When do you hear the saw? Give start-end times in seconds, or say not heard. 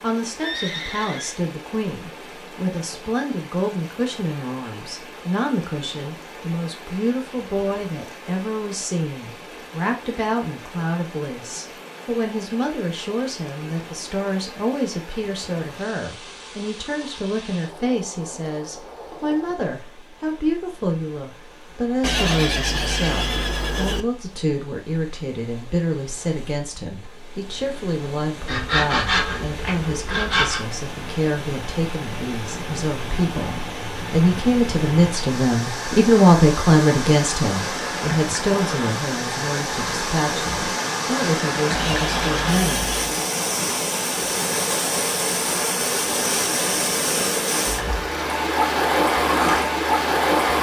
28.4-30.6.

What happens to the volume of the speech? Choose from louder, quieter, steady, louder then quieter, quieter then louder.
louder.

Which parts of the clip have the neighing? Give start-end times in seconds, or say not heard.
0.4-1.4, 22.0-24.1, 41.8-43.1.